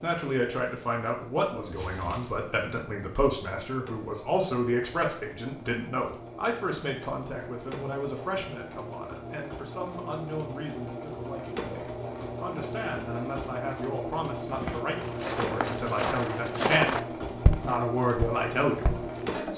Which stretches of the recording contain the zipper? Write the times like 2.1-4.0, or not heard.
not heard.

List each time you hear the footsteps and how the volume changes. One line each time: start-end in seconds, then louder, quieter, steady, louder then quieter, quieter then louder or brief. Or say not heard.
14.4-19.1 louder then quieter.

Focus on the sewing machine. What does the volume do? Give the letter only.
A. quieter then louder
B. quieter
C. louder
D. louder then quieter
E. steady
C.